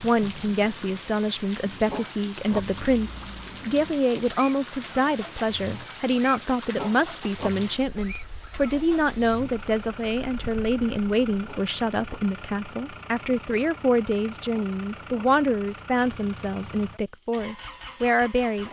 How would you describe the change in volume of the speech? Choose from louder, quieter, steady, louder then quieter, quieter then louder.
steady.